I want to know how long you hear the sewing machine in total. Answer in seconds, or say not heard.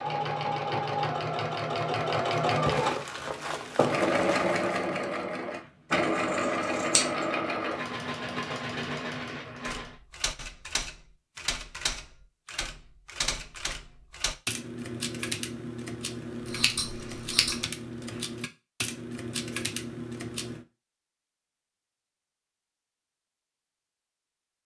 10 s.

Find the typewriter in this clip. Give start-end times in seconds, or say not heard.
9.7-20.6.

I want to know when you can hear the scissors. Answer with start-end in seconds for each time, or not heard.
6.2-7.0, 16.4-17.6.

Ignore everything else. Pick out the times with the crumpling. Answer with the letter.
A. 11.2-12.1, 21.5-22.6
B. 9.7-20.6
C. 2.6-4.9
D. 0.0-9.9
C.